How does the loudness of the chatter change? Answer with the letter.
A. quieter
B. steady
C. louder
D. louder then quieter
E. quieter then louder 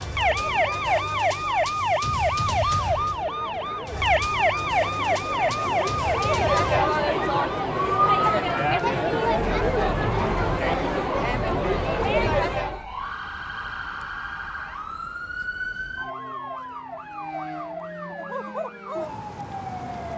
C.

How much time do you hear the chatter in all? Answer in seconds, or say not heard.
13 s.